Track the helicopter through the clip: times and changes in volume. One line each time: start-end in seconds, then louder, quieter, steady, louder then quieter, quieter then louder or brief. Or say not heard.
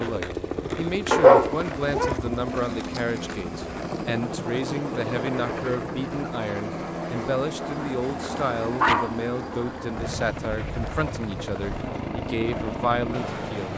0.0-13.7 steady.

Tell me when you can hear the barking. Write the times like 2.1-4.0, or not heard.
1.1-2.1, 8.3-11.2.